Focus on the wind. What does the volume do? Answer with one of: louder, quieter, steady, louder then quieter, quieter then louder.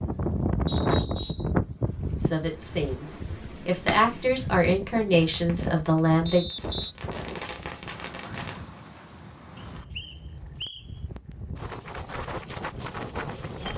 quieter then louder.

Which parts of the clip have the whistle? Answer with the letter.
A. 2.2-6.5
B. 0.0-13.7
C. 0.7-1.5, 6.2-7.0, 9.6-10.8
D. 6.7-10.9
C.